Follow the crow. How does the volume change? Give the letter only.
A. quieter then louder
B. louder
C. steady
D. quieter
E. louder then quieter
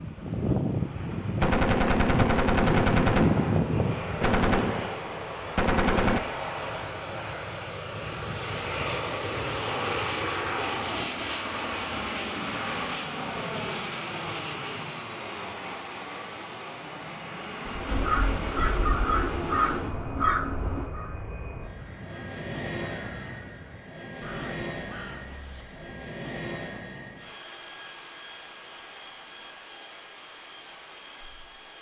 D.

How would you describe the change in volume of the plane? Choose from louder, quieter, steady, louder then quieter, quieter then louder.
quieter.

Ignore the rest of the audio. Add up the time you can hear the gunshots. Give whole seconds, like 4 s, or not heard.
5 s.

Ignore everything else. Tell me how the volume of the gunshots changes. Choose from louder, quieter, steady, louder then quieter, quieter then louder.
quieter then louder.